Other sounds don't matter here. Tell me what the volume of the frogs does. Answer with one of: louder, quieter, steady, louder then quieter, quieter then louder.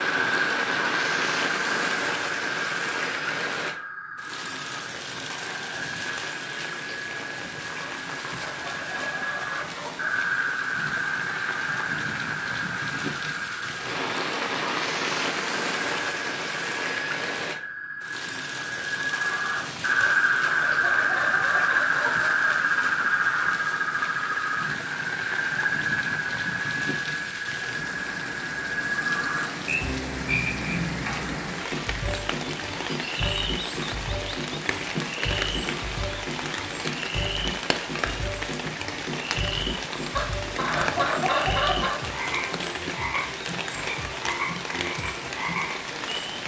louder then quieter.